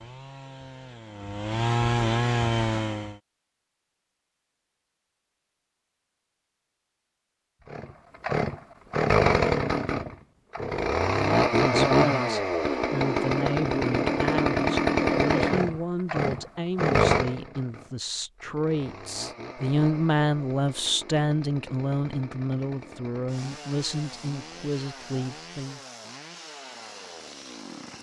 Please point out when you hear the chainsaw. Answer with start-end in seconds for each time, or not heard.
0.0-3.1, 7.7-27.9.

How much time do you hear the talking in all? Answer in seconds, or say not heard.
15 s.